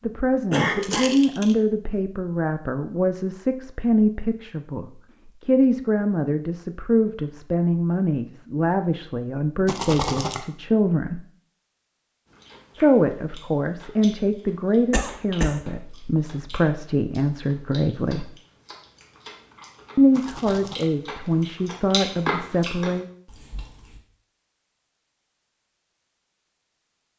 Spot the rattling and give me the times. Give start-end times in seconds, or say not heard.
0.8-1.6, 9.7-10.4, 20.1-20.9.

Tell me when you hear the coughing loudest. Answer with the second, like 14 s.
1 s.